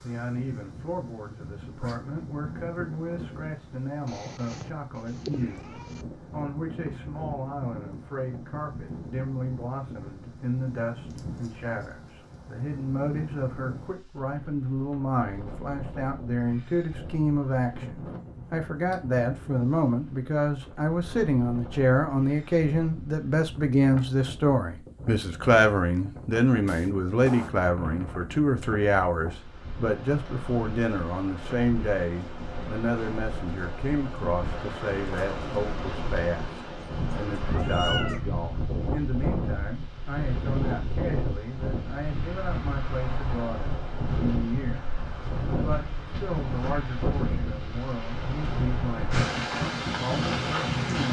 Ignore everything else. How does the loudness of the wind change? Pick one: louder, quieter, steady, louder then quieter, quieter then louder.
louder.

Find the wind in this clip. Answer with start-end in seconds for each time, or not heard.
0.0-51.0.